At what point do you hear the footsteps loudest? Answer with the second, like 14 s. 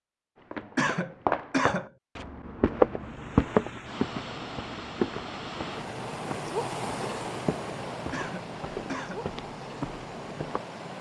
3 s.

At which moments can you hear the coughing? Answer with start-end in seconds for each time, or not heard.
0.8-1.9, 8.1-9.2.